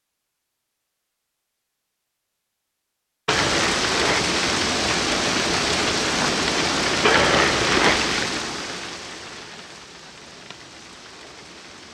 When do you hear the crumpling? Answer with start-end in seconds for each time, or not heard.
3.2-4.3, 7.0-8.2.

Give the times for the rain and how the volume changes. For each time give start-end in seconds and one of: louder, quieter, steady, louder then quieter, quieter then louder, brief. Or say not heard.
3.2-11.8 quieter.